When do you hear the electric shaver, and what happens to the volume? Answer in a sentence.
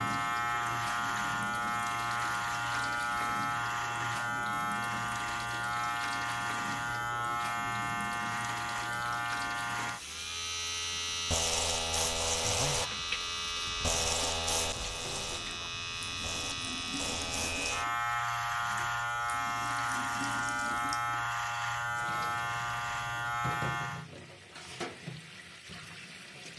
The electric shaver can be heard from 0.0 to 24.1 s, at a steady volume.